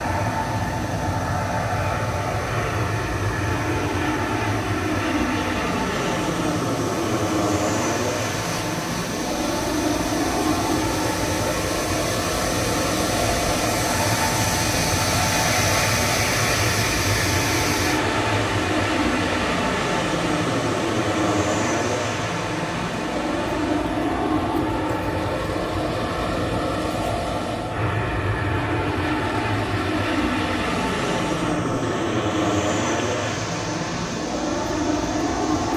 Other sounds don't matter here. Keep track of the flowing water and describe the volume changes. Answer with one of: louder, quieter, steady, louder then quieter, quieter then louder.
louder then quieter.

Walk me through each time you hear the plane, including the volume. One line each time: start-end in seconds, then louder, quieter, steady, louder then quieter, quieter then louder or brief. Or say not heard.
0.0-35.7 steady.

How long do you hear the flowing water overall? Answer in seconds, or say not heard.
36 s.